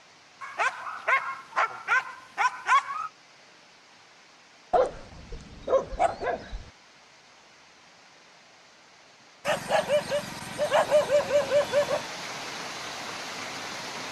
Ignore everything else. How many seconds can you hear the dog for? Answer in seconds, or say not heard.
7 s.